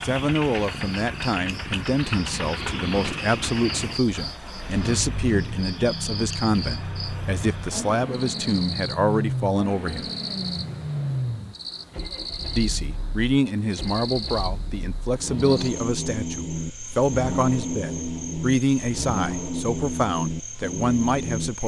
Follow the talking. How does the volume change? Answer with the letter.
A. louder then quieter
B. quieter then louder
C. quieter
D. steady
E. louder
D.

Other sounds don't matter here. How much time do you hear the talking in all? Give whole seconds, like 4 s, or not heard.
19 s.